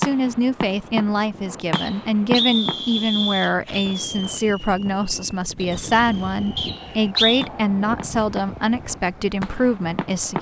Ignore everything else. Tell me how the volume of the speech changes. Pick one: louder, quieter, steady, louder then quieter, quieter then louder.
steady.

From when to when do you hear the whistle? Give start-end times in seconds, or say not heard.
1.7-3.5, 6.5-7.5.